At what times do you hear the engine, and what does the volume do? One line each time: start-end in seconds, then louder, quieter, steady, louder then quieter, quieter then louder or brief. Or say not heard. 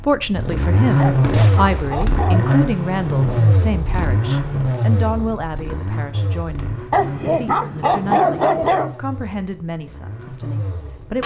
0.0-11.2 quieter.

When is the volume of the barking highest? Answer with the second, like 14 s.
8 s.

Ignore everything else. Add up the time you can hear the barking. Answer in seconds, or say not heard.
4 s.